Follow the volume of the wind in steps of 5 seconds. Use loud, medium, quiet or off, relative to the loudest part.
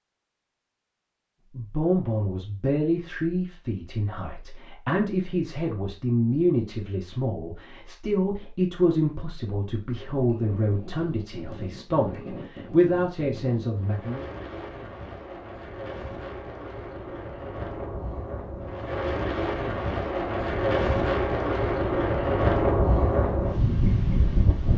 off, off, quiet, medium, loud.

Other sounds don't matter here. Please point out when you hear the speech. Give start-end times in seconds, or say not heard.
1.6-14.2.